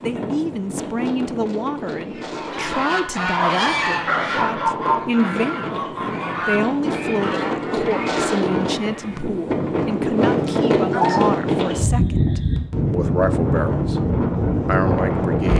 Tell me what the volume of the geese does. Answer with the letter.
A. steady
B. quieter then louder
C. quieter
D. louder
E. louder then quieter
C.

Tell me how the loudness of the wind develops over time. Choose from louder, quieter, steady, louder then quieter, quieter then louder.
louder.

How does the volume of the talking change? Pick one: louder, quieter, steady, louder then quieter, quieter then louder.
steady.